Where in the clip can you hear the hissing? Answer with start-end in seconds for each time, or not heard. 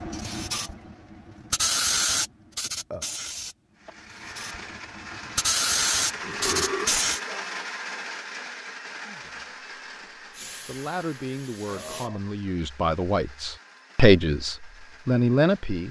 0.0-7.2, 10.3-12.1.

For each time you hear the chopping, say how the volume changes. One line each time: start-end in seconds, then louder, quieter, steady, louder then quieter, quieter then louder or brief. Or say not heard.
not heard.